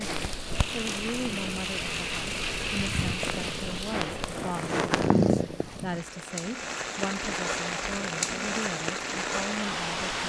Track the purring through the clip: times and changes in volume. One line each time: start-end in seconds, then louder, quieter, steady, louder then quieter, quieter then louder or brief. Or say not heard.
0.0-6.0 louder.